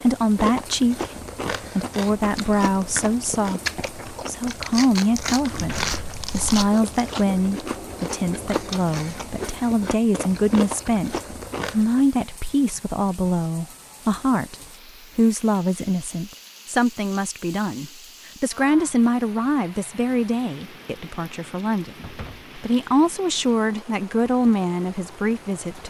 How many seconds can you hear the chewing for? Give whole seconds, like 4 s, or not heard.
12 s.